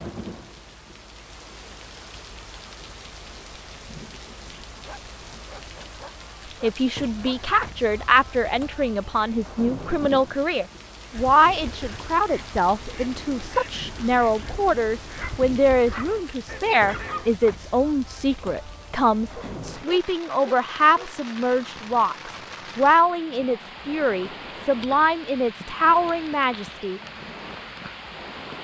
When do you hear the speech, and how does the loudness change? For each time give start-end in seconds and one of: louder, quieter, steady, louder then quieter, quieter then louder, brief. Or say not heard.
6.6-27.0 steady.